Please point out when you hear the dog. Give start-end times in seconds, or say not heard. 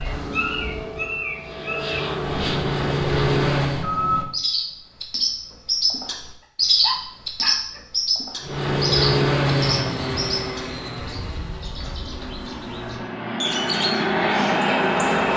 6.8-7.8.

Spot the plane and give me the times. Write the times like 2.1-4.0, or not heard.
0.0-3.9, 8.4-15.3.